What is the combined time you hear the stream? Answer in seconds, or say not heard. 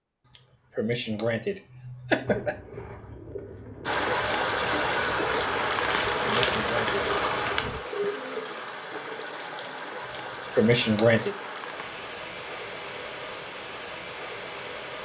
11 s.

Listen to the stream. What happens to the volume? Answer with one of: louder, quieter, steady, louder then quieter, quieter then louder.
quieter.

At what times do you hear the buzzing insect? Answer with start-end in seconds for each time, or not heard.
not heard.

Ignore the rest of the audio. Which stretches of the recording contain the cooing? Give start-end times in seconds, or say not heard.
2.1-8.5.